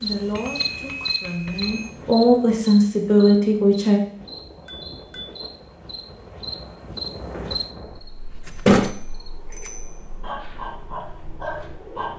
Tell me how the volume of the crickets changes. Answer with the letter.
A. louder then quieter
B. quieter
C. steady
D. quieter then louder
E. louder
D.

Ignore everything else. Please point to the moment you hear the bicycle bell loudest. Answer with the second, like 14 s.
1 s.